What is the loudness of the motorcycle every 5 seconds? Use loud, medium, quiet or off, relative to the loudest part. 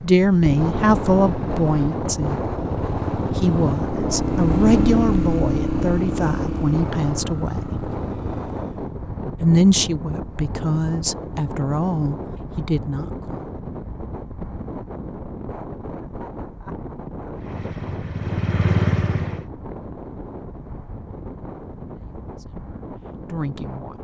loud, loud, off, loud, off.